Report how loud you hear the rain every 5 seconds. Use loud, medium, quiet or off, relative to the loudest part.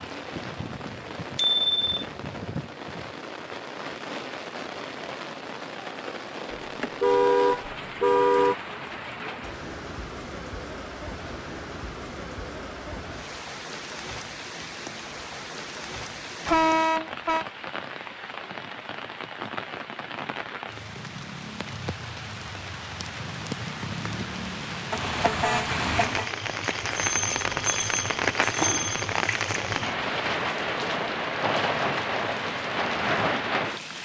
medium, medium, medium, medium, medium, loud, loud.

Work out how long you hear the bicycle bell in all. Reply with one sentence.
You can hear the bicycle bell for 3 seconds altogether.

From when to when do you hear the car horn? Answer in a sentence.
The car horn can be heard from 6.5 to 8.6 s, from 16.4 to 17.4 s and from 24.9 to 26.3 s.